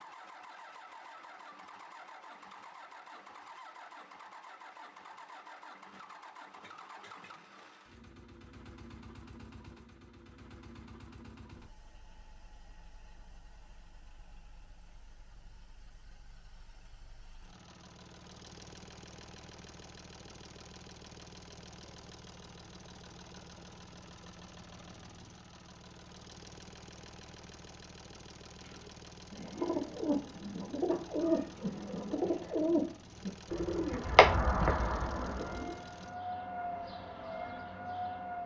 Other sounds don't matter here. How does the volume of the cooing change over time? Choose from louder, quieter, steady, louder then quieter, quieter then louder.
louder.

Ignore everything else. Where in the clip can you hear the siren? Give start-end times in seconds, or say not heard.
35.3-38.4.